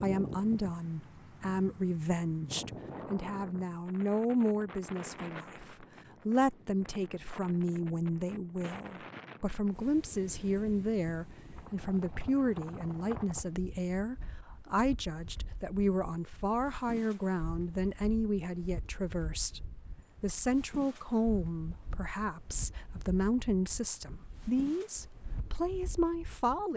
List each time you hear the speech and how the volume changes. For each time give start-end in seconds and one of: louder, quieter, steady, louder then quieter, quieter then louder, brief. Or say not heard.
0.0-26.7 steady.